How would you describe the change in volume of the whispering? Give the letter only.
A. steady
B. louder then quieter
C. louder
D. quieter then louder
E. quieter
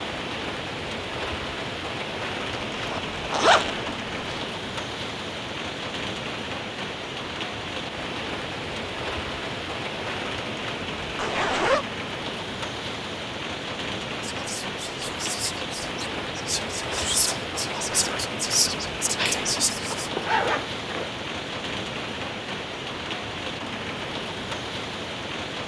C.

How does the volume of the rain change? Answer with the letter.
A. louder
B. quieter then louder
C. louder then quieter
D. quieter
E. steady
E.